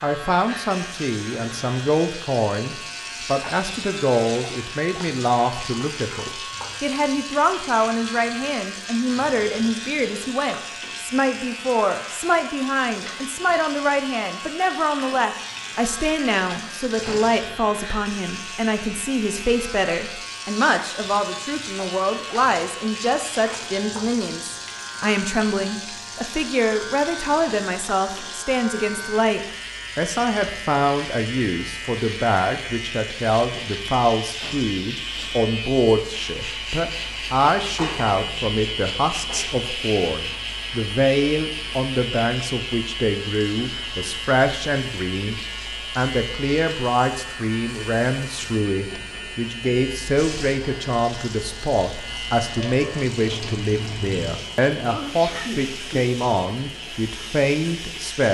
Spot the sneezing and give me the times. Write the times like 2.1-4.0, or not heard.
54.9-56.0.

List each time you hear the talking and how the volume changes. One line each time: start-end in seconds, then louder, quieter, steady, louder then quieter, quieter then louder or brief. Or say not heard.
0.0-58.2 steady.